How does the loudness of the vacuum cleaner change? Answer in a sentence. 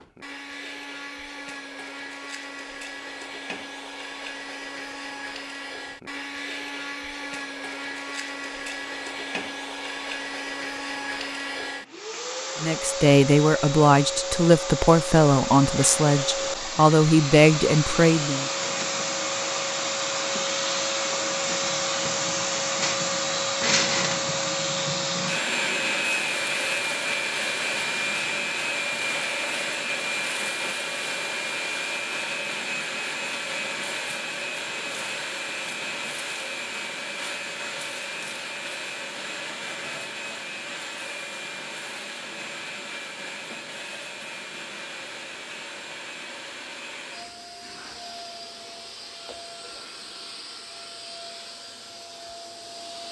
The volume of the vacuum cleaner goes up, then down.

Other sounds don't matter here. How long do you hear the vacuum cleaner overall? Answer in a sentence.
You can hear the vacuum cleaner for 53 seconds altogether.